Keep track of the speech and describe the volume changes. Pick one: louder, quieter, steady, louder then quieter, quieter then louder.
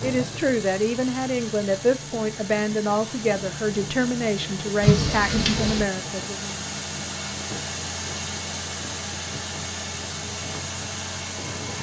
steady.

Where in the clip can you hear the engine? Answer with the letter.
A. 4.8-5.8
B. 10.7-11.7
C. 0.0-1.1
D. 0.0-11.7
D.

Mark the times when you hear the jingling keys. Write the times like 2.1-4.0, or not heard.
4.8-5.8.